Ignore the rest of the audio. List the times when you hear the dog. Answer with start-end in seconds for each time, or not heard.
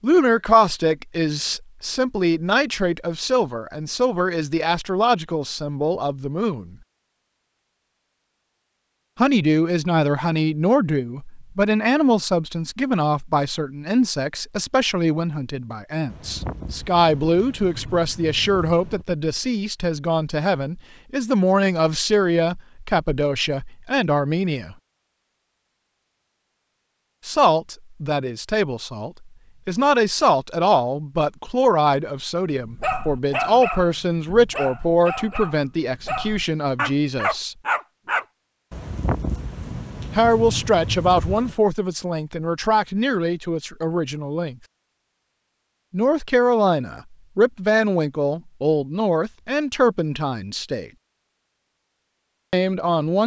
32.6-38.2.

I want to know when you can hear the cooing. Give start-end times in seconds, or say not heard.
not heard.